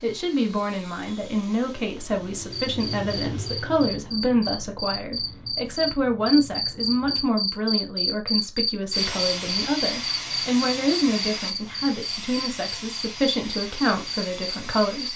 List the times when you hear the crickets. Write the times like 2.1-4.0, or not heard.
2.5-15.1.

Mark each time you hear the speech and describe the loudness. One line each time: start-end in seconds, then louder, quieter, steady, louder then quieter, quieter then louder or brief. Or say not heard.
0.0-15.1 steady.